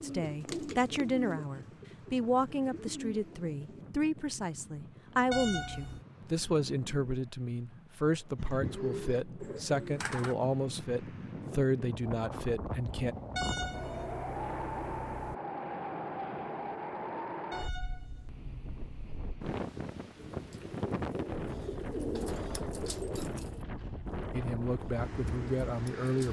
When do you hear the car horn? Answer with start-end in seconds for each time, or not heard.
5.3-6.0, 13.3-15.3, 17.5-19.2.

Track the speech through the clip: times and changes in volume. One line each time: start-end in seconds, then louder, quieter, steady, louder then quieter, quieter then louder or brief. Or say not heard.
0.0-13.2 steady
24.3-26.2 brief.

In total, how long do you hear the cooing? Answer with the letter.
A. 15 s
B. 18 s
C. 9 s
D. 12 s
D.